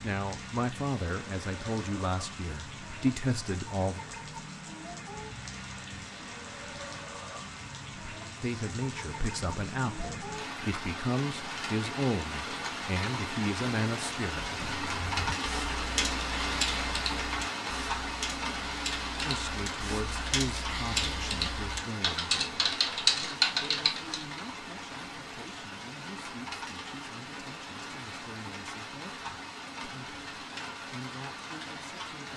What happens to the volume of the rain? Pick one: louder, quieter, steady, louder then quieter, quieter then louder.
louder then quieter.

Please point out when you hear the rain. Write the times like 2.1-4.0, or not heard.
0.0-32.3.